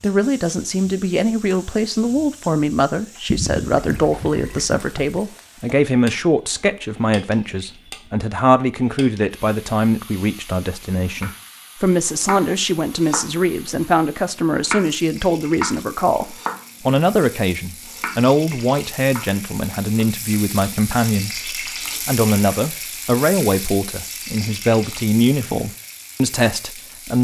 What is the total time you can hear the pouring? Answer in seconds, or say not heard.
2 s.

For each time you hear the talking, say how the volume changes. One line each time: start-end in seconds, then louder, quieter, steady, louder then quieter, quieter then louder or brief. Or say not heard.
0.0-27.1 steady.